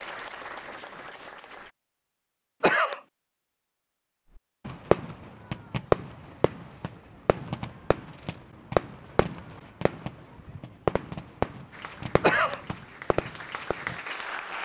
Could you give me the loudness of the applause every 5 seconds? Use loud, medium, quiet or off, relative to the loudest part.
loud, off, loud.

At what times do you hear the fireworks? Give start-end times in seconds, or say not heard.
4.7-14.1.